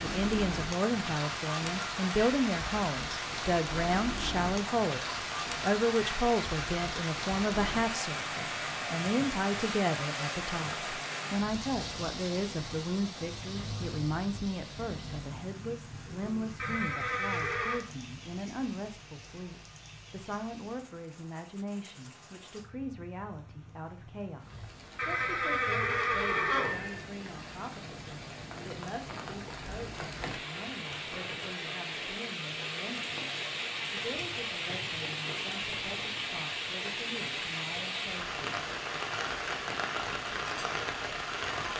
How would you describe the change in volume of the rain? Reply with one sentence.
The volume of the rain goes down, then up.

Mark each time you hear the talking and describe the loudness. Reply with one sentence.
You can hear the talking from 0.0 to 38.5 s, getting quieter.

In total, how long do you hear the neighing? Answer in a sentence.
The neighing can be heard for 3 seconds in total.